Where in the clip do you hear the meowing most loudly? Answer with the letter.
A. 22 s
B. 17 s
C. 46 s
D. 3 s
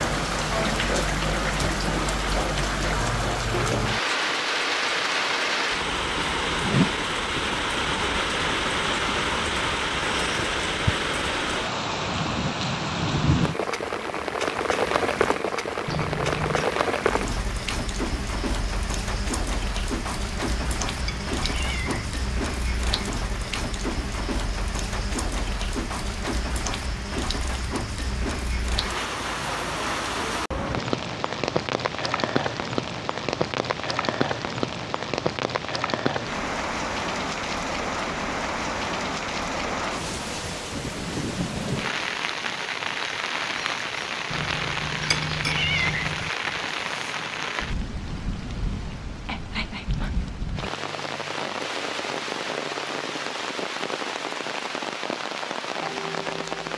C.